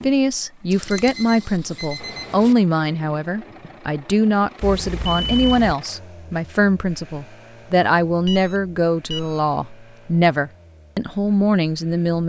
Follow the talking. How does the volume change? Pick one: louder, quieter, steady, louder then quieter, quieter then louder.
steady.